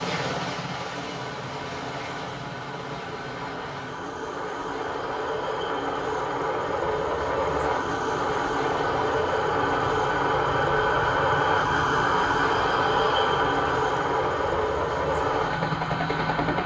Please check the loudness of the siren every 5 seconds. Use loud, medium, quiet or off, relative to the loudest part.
quiet, medium, loud, medium.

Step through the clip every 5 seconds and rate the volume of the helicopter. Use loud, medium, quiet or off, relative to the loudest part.
medium, loud, loud, loud.